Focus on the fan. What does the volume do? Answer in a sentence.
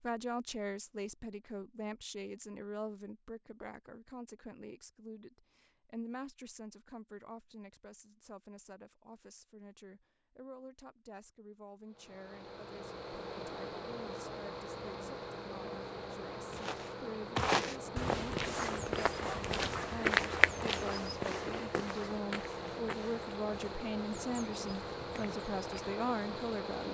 The volume of the fan stays about the same.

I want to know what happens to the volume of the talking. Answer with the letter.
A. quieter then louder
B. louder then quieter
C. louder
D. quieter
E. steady
A.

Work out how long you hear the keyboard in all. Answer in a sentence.
The keyboard can't be heard in this clip.